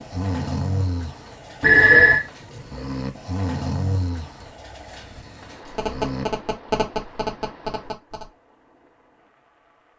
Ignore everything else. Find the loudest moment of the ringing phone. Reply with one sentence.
The volume of the ringing phone peaks at 2 seconds.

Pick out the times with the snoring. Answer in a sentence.
You can hear the snoring from 0.0 to 6.2 s.